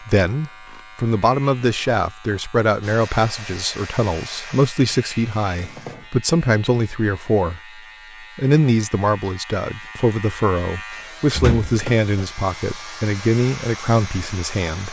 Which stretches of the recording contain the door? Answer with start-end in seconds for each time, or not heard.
11.3-12.2.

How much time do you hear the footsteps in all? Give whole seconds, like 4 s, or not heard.
not heard.